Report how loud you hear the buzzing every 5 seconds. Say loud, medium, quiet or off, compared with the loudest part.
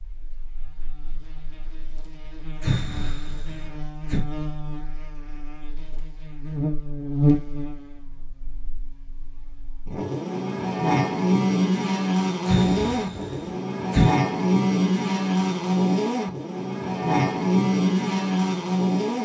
quiet, medium, loud, loud.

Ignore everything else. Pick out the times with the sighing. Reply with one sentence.
The sighing can be heard from 2.6 to 4.2 s and from 12.4 to 14.2 s.